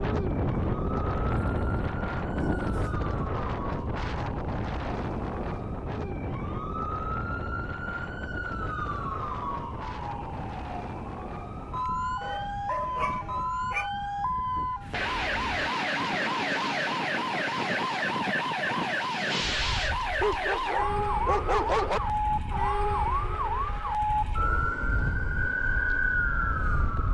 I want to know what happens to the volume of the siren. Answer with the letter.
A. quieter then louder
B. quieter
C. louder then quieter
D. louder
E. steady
D.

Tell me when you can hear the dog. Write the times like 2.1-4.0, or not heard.
1.2-2.8, 12.2-13.9, 20.2-22.0.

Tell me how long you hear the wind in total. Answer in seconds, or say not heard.
27 s.